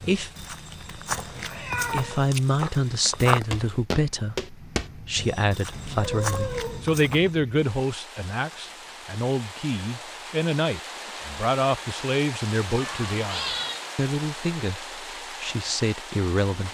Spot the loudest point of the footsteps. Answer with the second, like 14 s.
3 s.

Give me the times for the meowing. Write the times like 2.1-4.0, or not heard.
1.1-2.2, 5.7-6.9, 12.8-13.8.